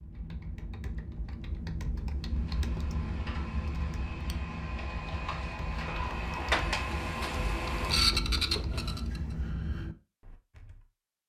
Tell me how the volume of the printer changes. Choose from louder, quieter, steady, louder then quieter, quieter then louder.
louder.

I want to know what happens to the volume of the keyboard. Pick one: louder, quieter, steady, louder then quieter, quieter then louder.
steady.